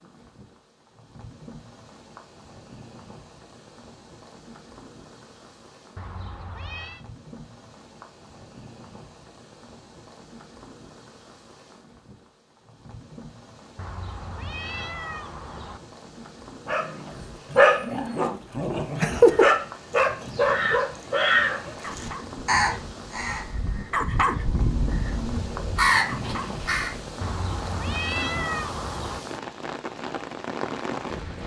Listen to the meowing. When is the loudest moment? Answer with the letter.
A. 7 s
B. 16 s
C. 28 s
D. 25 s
C.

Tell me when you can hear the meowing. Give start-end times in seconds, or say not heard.
6.0-7.0, 13.8-15.8, 27.2-29.2.